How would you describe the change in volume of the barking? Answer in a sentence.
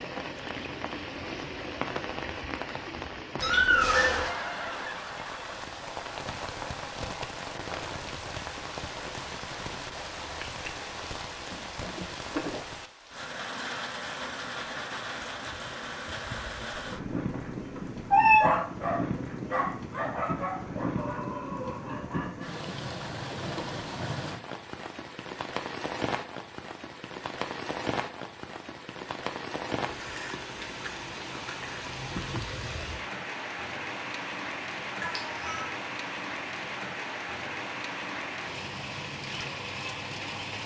The volume of the barking goes down.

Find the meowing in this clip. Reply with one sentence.
The meowing can be heard from 3.4 to 4.3 s, from 16.8 to 18.5 s and from 35.0 to 35.6 s.